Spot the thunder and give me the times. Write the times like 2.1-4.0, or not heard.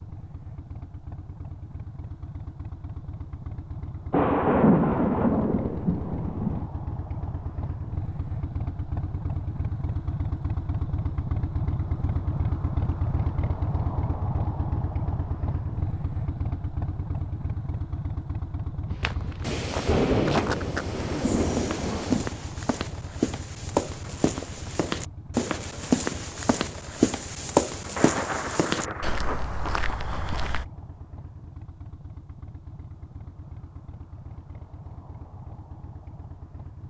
4.1-6.7, 19.4-22.3, 27.9-30.4.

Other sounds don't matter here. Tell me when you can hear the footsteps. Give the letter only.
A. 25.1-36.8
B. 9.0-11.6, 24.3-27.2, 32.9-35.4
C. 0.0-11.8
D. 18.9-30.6
D.